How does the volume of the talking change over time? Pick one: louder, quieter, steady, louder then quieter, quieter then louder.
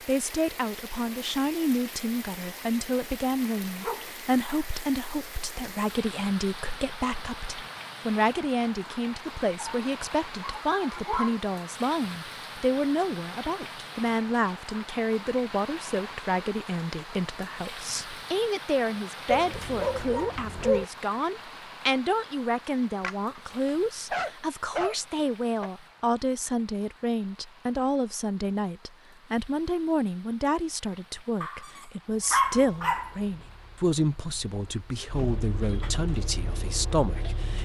steady.